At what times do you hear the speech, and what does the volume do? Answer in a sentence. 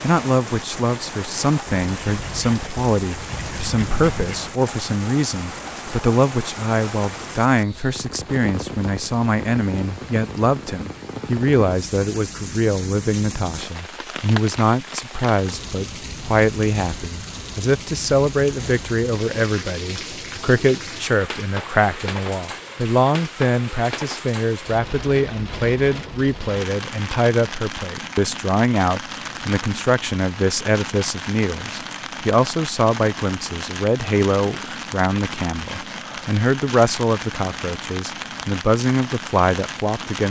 You can hear the speech from 0.0 to 40.2 s, at a steady volume.